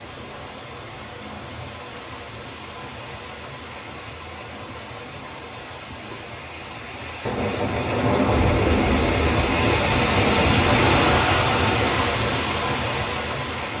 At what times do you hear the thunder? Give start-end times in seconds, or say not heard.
7.2-11.2.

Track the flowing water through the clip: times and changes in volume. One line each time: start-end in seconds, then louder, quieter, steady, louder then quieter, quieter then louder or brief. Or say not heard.
0.0-13.7 louder.